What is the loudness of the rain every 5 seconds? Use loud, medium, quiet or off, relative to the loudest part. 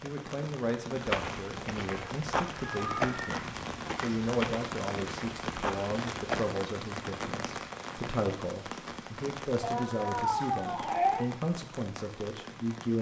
loud, loud, medium.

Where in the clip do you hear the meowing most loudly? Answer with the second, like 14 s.
11 s.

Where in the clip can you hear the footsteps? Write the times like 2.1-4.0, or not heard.
0.9-6.5.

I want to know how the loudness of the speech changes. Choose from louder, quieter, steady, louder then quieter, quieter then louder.
steady.